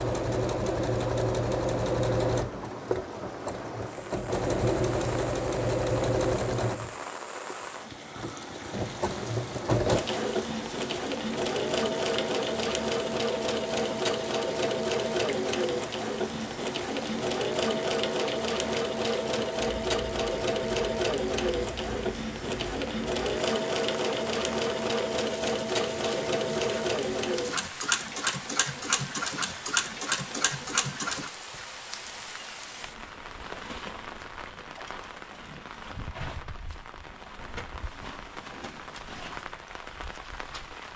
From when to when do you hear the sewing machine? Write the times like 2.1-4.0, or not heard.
0.0-31.3.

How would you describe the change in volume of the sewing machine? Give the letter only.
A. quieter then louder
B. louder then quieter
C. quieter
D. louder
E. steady
E.